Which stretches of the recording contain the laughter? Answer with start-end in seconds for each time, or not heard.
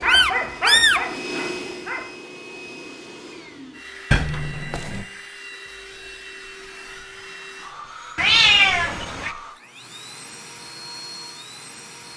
not heard.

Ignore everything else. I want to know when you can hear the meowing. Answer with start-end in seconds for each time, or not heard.
0.0-1.0, 4.1-5.0, 8.2-9.3.